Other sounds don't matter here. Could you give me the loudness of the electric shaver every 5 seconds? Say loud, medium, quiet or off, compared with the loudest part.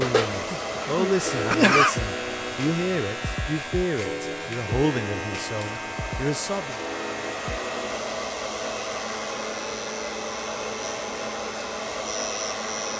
loud, medium, medium.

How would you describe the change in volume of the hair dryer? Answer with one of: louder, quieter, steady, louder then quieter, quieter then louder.
quieter then louder.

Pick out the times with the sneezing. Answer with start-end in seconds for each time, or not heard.
0.5-1.9.